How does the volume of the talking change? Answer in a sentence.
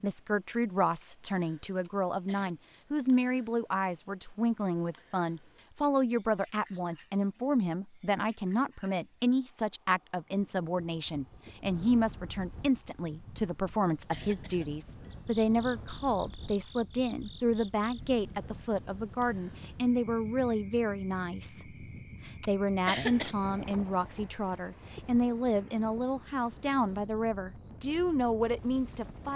The volume of the talking stays about the same.